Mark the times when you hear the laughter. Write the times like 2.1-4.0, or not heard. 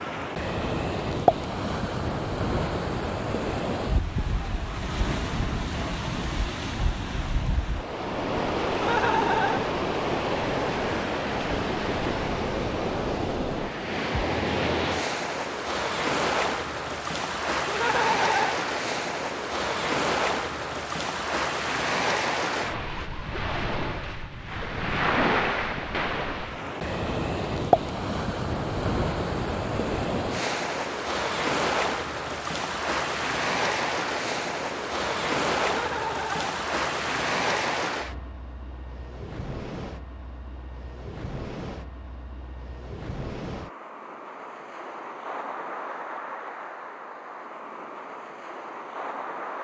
8.8-9.7, 17.6-18.6, 35.6-36.5.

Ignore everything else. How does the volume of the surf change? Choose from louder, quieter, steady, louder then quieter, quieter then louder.
quieter.